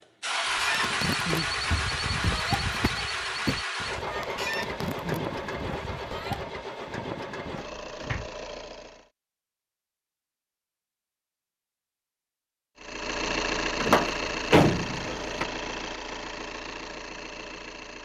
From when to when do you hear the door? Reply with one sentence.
The door can be heard from 1.7 to 2.5 s, from 7.8 to 8.3 s and from 13.8 to 15.4 s.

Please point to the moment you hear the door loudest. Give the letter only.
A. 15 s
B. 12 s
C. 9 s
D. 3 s
A.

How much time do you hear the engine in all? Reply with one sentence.
You can hear the engine for 14 seconds altogether.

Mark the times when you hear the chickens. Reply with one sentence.
You can hear the chickens from 0.5 to 6.5 s.